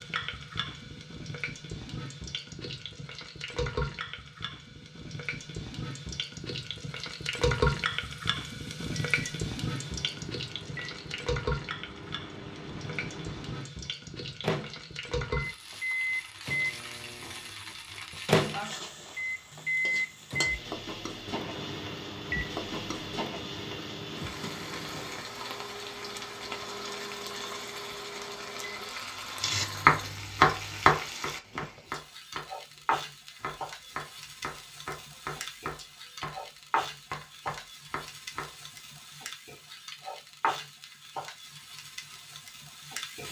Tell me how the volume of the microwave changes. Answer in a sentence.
The loudness of the microwave goes up, then down.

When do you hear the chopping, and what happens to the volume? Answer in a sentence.
You can hear the chopping from 29.4 to 38.5 s, getting quieter.